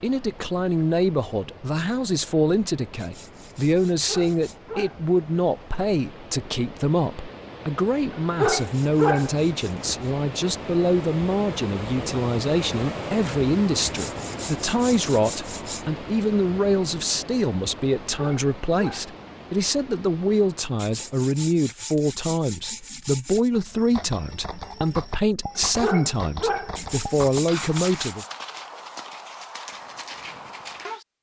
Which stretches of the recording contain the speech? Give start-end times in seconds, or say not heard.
0.0-28.2.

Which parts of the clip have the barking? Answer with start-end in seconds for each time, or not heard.
4.0-5.0, 8.1-9.3, 18.1-19.1, 25.6-26.8.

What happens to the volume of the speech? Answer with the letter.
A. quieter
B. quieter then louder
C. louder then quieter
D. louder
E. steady
E.